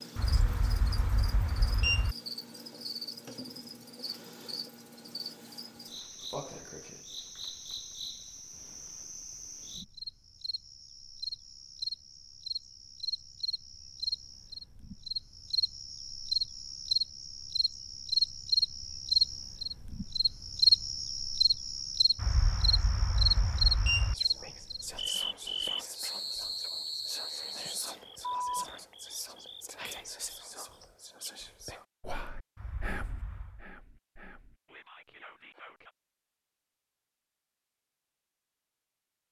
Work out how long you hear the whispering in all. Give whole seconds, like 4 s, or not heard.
12 s.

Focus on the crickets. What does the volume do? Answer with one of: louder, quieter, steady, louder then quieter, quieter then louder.
louder then quieter.